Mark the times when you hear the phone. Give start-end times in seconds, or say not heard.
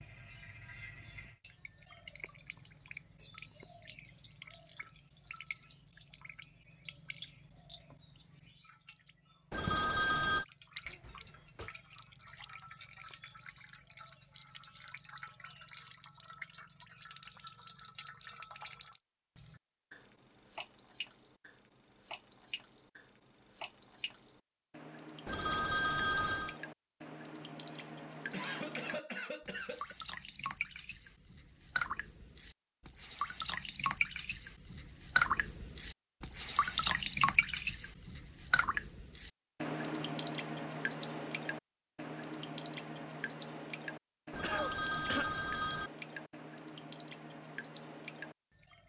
9.5-10.4, 25.2-26.6, 44.3-45.9.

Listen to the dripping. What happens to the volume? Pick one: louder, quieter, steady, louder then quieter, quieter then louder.
louder then quieter.